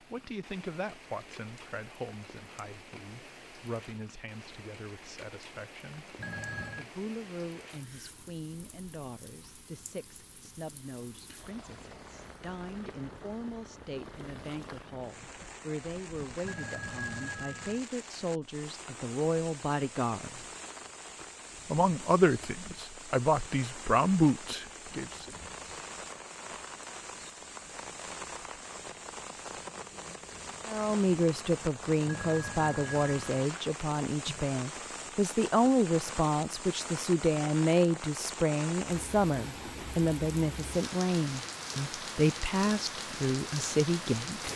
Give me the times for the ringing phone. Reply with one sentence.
You can hear the ringing phone from 6.2 to 6.8 s, from 16.4 to 17.8 s and from 32.0 to 33.5 s.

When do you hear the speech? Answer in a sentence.
You can hear the speech from 0.0 to 6.2 s, from 6.8 to 20.4 s, from 21.7 to 25.3 s and from 30.6 to 44.5 s.